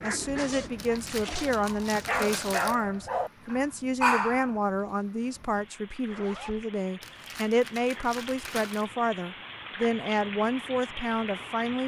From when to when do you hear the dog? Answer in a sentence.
You can hear the dog from 0.0 to 4.5 s.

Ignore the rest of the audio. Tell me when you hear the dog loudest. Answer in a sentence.
The loudest moment of the dog is at 4 seconds.